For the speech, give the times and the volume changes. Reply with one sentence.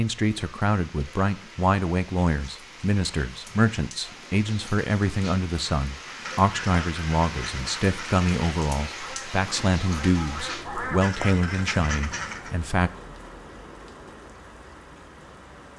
The speech can be heard from 0.0 to 12.9 s, at a steady volume.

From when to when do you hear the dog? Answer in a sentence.
You can't hear the dog here.